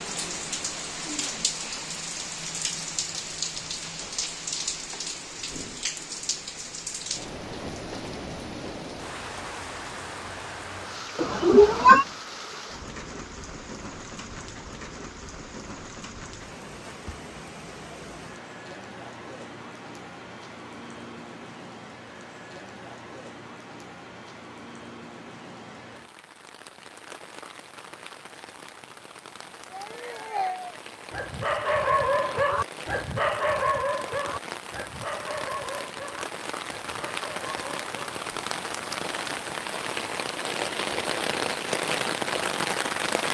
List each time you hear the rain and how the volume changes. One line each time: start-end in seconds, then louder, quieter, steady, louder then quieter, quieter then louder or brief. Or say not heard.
0.0-43.2 quieter then louder.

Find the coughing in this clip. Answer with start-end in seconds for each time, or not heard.
not heard.